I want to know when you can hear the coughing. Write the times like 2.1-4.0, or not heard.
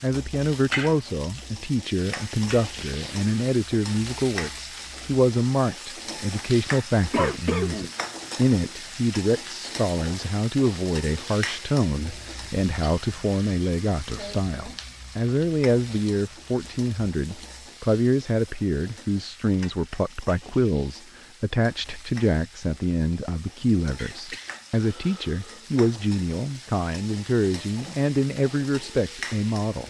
7.1-8.5, 23.9-25.6.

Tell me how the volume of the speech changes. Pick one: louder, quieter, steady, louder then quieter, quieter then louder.
steady.